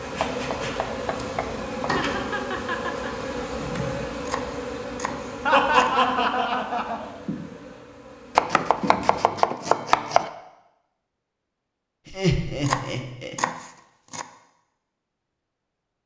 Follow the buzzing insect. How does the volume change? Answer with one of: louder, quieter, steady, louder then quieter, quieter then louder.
quieter.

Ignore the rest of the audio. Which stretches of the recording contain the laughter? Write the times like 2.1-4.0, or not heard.
1.9-3.1, 5.5-7.1, 12.1-13.3.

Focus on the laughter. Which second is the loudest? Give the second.
6 s.